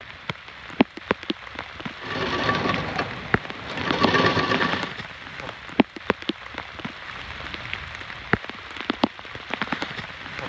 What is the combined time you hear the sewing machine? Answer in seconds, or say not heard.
3 s.